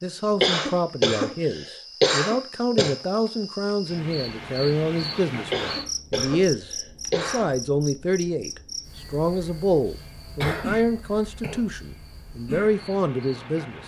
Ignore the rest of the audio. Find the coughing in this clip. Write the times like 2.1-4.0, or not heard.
0.4-3.0, 5.5-7.5, 9.9-11.7.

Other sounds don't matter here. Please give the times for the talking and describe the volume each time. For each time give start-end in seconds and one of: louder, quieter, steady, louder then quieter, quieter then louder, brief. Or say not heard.
0.0-13.8 steady.